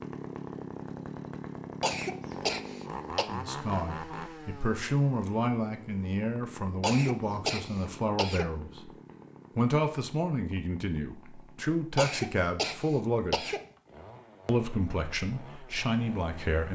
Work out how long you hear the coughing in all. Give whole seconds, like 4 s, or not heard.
5 s.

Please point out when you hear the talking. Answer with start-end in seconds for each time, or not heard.
3.2-8.8, 9.6-13.6, 14.4-16.6.